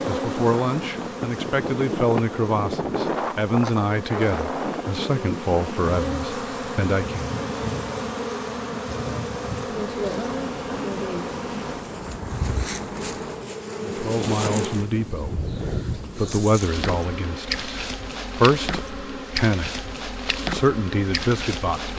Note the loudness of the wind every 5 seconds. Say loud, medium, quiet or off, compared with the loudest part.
loud, medium, medium, medium, off.